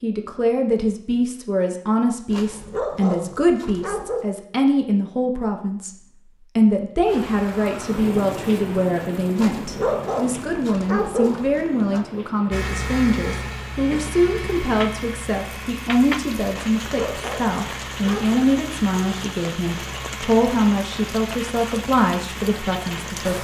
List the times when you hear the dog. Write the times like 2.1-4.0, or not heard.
2.3-4.2, 9.3-12.1, 16.5-18.4.